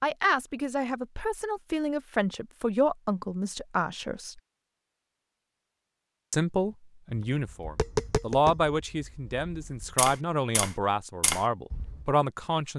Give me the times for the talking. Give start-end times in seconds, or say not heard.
0.0-4.4, 6.3-12.7.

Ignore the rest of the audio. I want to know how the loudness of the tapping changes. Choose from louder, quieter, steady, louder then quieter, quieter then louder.
quieter then louder.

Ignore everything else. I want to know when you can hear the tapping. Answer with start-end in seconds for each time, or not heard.
7.1-12.1.